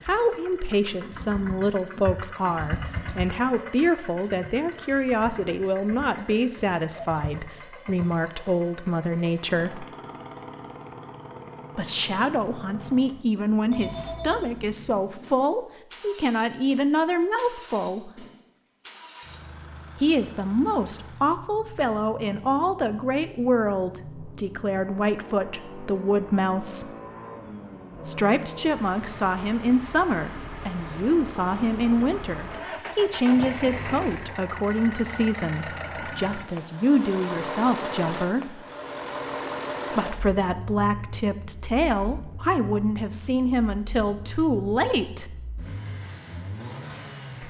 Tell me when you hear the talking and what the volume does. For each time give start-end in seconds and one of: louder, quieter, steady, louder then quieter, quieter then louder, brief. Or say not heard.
0.1-9.8 steady
11.8-18.2 steady
20.0-26.9 steady
28.1-38.6 steady
39.9-45.5 steady.